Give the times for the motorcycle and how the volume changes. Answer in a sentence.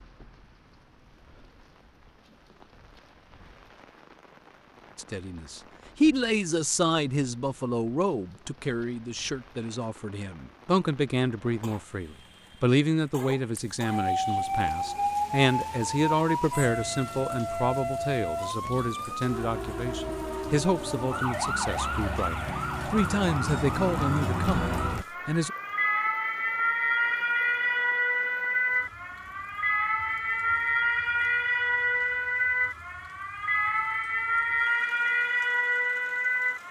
The motorcycle can't be heard in this clip.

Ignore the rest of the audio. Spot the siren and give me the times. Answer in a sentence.
The siren can be heard from 13.8 to 36.6 s.